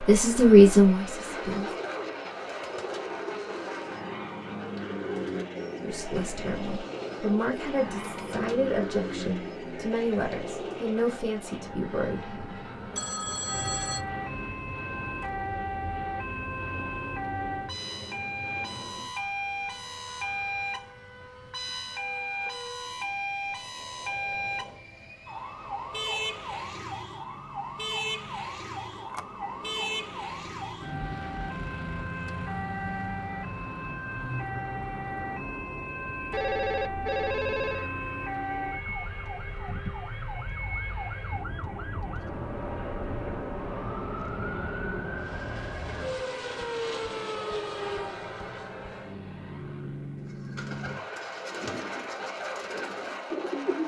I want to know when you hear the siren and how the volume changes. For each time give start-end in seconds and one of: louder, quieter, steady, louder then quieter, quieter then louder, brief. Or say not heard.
13.4-48.1 steady.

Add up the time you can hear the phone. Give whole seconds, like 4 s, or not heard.
3 s.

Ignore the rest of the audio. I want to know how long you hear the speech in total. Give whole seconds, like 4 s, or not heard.
9 s.